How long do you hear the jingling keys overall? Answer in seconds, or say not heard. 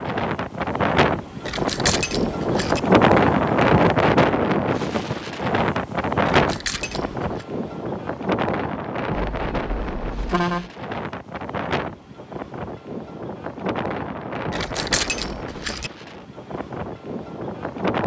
4 s.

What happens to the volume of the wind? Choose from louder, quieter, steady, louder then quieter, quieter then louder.
quieter.